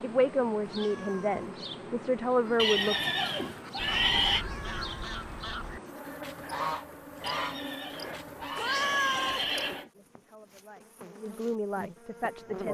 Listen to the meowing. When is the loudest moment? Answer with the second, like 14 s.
9 s.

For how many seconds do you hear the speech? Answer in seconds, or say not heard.
6 s.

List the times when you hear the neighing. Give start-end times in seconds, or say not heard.
2.5-4.5, 7.2-9.9.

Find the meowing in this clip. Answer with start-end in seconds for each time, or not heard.
0.6-1.6, 4.3-5.0, 8.6-9.4.